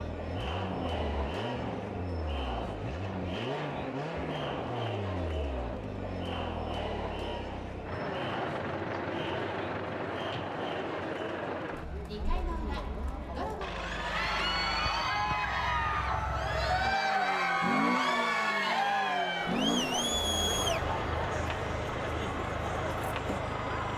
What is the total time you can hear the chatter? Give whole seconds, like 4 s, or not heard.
24 s.